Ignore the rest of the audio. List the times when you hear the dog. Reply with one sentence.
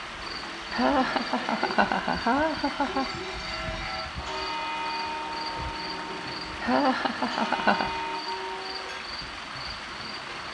You can't hear the dog here.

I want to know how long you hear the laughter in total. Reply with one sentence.
The laughter can be heard for 4 seconds in total.